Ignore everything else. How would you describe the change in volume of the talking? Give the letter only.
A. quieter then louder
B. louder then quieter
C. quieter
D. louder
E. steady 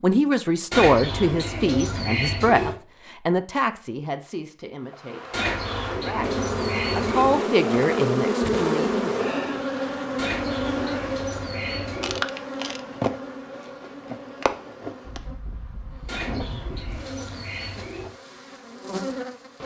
A.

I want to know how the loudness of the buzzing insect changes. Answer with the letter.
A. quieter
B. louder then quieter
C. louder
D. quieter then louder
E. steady
A.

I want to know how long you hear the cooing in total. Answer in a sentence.
You can hear the cooing for 8 seconds altogether.